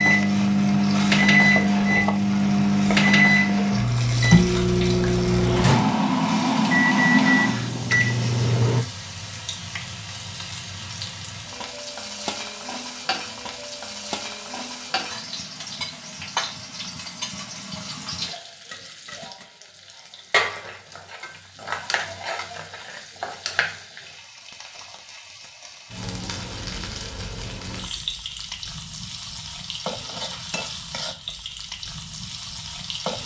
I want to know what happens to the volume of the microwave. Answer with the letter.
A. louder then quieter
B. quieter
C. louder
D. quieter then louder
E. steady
E.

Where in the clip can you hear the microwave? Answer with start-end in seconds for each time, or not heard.
0.0-8.8.